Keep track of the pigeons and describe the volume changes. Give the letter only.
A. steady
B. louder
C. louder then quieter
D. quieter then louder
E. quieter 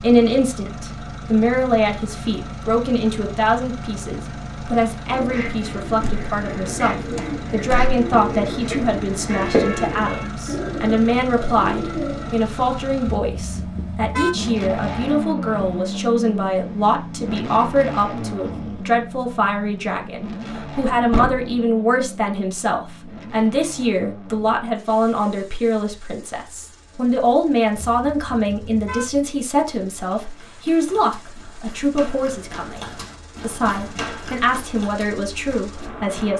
C.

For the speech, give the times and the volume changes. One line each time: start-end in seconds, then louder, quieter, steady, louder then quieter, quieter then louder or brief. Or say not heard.
0.0-32.8 steady
33.4-36.3 brief.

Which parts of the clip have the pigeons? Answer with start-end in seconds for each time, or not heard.
5.0-12.4.